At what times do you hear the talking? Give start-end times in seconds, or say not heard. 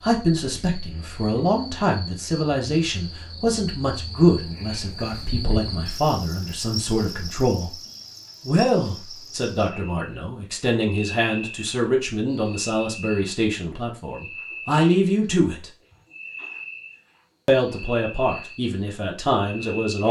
0.0-7.8, 8.4-15.7, 17.4-20.0.